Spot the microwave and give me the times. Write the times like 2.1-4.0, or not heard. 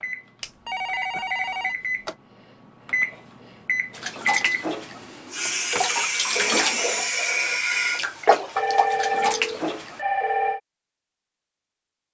0.0-5.2.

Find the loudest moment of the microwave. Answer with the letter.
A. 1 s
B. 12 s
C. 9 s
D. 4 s
D.